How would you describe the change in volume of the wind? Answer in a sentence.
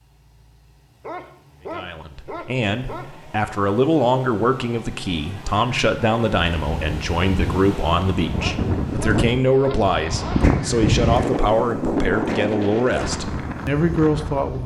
The volume of the wind goes up, then down.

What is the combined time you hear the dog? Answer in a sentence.
The dog can be heard for 4 seconds in total.